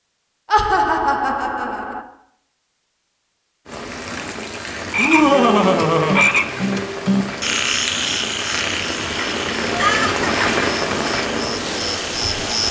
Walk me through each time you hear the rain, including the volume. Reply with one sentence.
The rain can be heard from 3.6 to 12.6 s, getting louder.